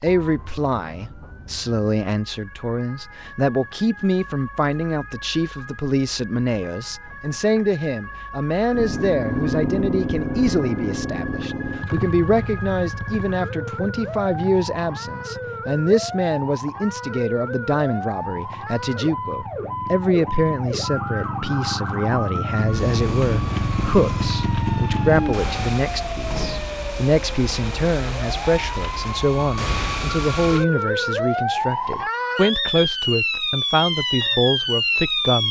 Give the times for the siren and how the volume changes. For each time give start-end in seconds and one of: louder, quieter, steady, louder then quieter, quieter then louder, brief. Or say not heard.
0.0-35.4 louder.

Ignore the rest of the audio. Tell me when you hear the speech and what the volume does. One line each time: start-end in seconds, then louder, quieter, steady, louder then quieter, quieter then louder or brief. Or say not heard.
0.0-35.4 steady.